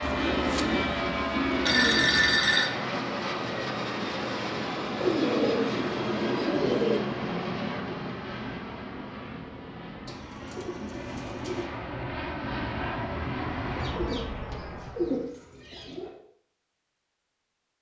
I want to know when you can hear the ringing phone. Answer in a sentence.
The ringing phone can be heard from 1.6 to 2.7 s.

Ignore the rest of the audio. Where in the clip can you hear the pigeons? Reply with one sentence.
You can hear the pigeons from 0.0 to 2.5 s, from 5.0 to 7.0 s, from 10.1 to 11.7 s and from 13.8 to 16.1 s.